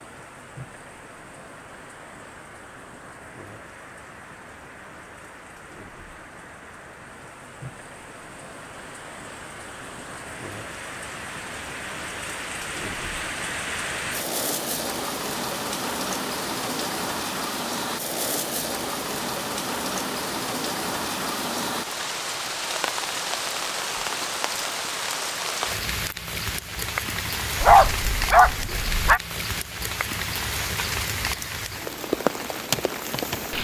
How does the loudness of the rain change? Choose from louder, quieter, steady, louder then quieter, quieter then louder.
louder.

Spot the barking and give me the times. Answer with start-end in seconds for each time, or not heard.
27.6-29.2.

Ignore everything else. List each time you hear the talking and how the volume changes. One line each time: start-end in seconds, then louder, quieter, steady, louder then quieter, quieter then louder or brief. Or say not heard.
not heard.